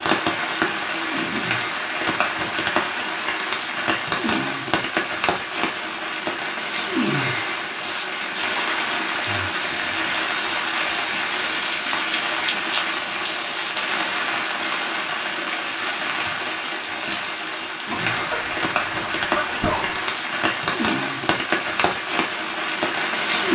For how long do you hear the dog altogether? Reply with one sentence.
You can't hear the dog here.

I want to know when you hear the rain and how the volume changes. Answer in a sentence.
The rain can be heard from 0.0 to 23.4 s, at a steady volume.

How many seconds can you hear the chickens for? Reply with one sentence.
You can hear the chickens for 2 seconds altogether.